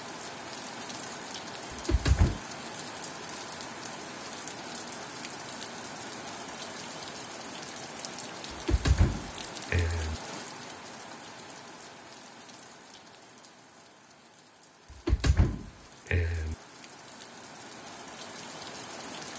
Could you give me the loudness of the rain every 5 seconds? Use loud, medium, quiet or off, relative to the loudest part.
loud, loud, medium, medium.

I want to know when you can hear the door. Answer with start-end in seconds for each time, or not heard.
1.7-2.4, 8.5-10.2, 14.9-16.6.